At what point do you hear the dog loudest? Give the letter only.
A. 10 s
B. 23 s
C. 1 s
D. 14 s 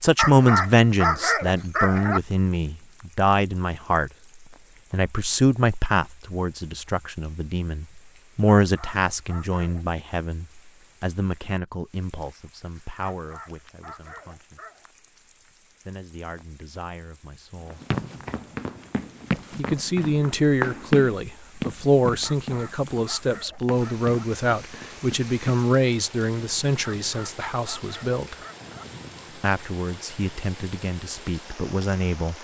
C.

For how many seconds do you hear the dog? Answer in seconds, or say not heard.
9 s.